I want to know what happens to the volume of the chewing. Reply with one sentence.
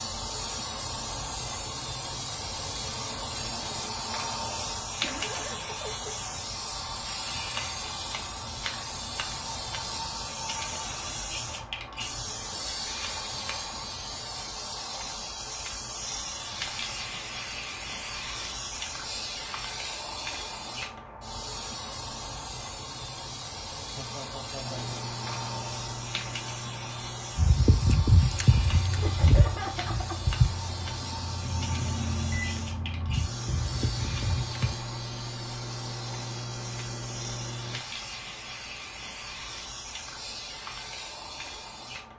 The loudness of the chewing goes down.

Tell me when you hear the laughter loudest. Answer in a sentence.
The loudest moment of the laughter is at 30 seconds.